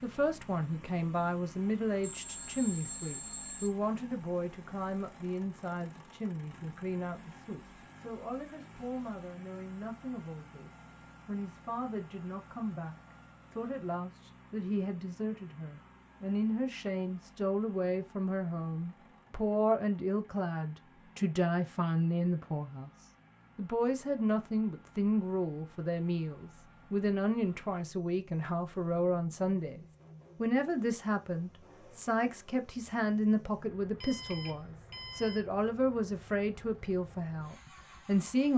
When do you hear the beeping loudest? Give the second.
3 s.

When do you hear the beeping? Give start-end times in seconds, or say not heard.
2.0-3.7, 34.0-35.4.